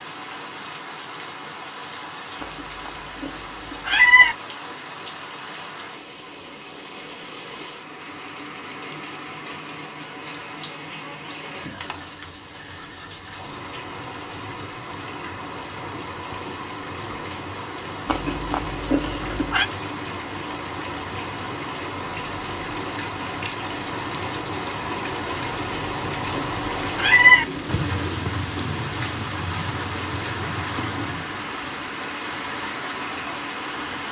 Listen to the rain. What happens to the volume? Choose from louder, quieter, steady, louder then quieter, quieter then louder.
louder.